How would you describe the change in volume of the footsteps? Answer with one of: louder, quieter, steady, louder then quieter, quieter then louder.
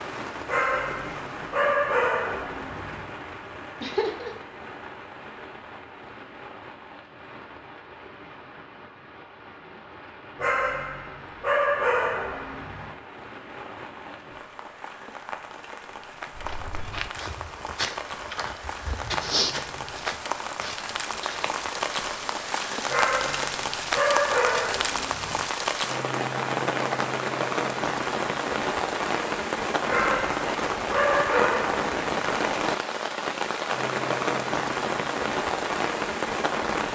louder then quieter.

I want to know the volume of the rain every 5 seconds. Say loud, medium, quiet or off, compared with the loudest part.
medium, quiet, quiet, medium, loud, loud, loud, loud.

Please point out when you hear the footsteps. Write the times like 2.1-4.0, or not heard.
16.4-21.7.